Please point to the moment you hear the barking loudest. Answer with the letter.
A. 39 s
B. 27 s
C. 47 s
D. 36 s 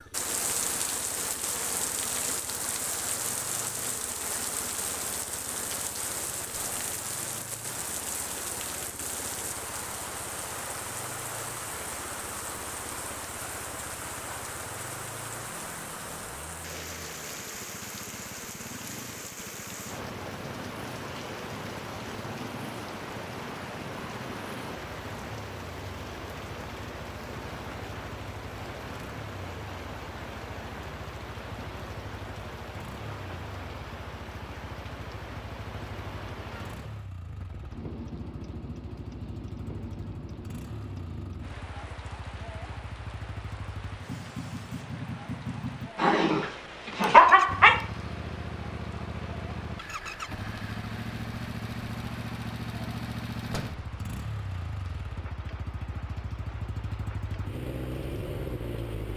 C.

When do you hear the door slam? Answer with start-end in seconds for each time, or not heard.
53.5-54.0.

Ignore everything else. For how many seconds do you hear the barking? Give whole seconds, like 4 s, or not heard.
2 s.